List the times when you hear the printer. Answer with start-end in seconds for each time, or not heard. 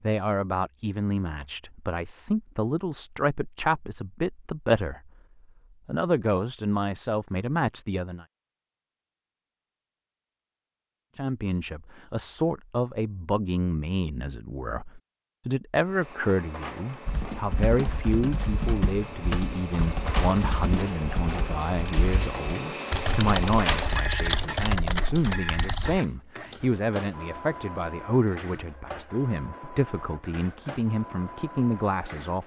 15.8-32.4.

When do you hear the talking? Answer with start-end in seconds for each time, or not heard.
0.0-5.1, 5.8-8.2, 11.2-32.4.